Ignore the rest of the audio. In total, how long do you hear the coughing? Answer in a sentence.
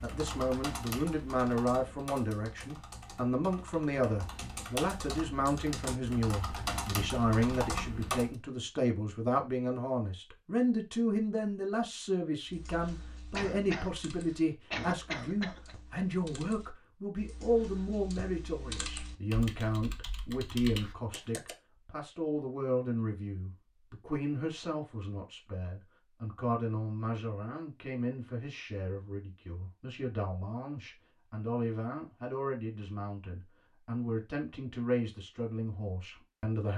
You can hear the coughing for 2 seconds altogether.